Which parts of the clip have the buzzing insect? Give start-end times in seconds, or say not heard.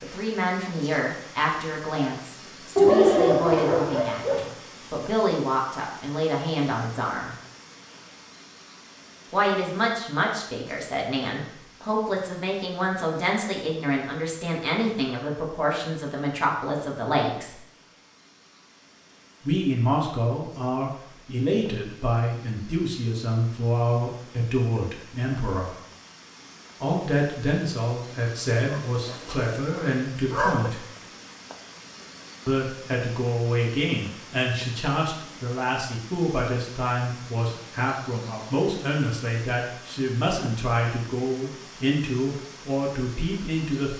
not heard.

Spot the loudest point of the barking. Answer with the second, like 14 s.
3 s.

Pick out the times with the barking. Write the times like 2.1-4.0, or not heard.
2.8-4.5, 28.7-30.7.